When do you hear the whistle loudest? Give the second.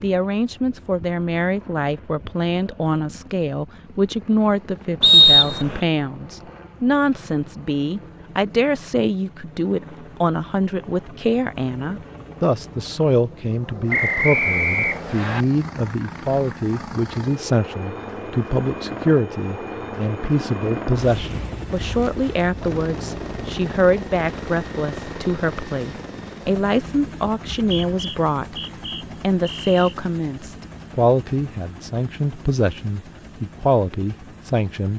5 s.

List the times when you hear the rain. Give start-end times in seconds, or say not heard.
not heard.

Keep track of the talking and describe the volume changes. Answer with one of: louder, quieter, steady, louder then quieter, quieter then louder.
steady.